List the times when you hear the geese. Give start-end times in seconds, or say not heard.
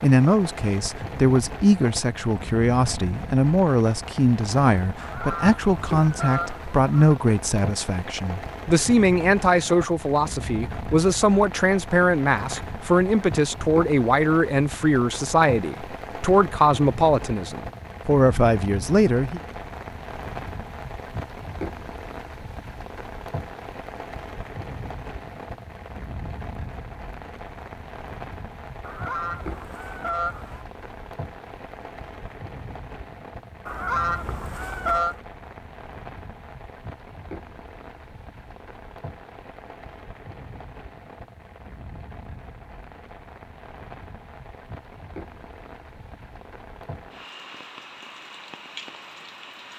5.0-7.2, 28.8-30.6, 33.6-35.2.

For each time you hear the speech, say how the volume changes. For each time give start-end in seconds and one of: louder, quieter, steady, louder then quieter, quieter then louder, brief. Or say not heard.
0.0-19.4 steady.